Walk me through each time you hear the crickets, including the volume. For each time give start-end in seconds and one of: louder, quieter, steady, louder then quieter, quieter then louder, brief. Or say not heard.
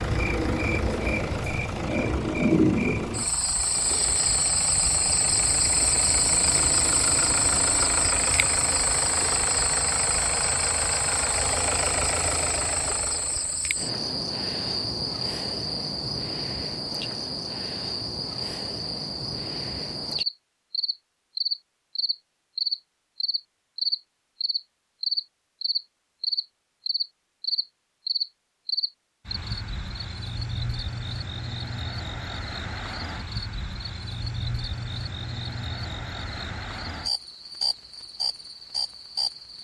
0.0-39.5 quieter.